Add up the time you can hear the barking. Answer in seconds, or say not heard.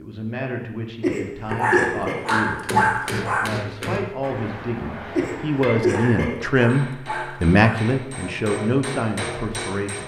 4 s.